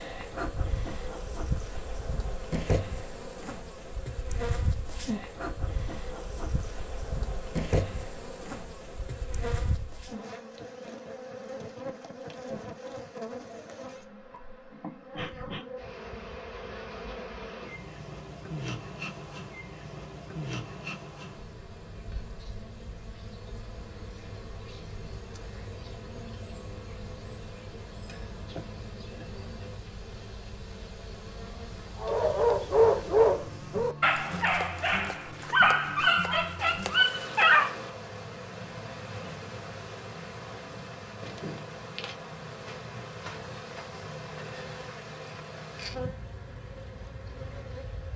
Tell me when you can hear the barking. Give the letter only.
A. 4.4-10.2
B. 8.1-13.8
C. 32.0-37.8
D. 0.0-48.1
C.